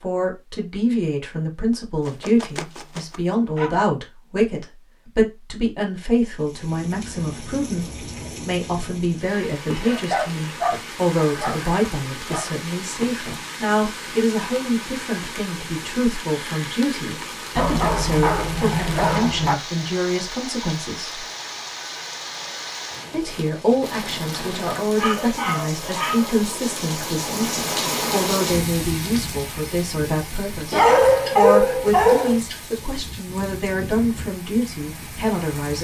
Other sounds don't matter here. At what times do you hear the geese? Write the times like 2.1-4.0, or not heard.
not heard.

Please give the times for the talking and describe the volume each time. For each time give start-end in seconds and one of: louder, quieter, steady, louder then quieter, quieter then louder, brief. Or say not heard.
0.0-21.2 steady
23.1-35.7 steady.